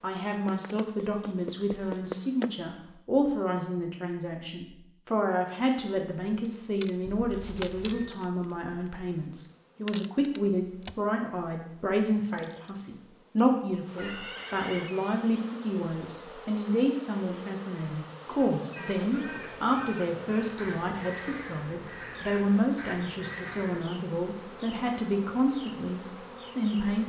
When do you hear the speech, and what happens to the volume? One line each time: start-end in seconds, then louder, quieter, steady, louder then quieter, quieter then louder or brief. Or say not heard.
0.0-27.0 steady.